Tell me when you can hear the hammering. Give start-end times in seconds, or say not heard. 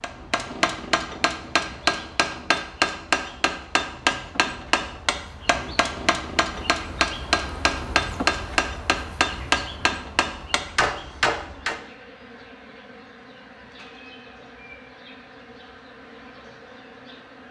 0.0-11.8.